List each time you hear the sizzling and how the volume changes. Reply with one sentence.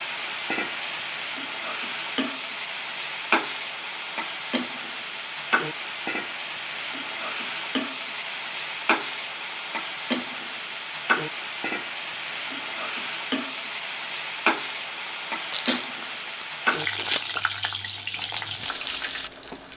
You can hear the sizzling from 0.0 to 19.7 s, at a steady volume.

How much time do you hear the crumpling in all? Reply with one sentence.
The crumpling can be heard for 2 seconds in total.